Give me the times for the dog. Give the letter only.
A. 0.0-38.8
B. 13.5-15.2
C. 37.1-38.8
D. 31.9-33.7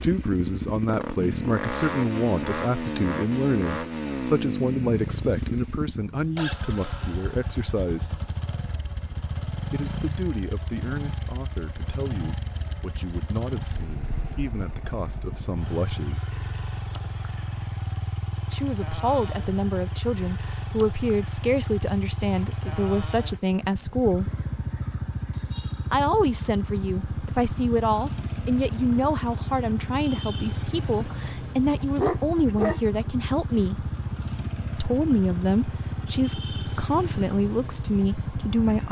D.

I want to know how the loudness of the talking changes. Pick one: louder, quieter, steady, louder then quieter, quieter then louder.
quieter then louder.